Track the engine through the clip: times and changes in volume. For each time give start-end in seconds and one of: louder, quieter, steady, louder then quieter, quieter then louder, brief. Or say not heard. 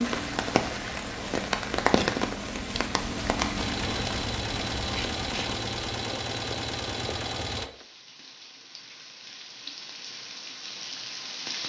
3.5-7.7 steady.